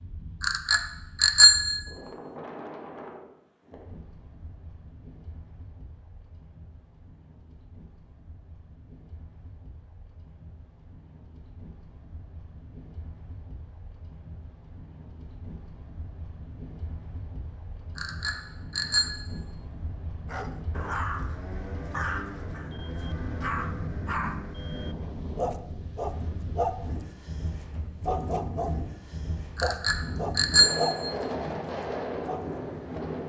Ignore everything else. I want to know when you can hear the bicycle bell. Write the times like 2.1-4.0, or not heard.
0.4-1.9, 17.9-19.1, 29.6-31.1.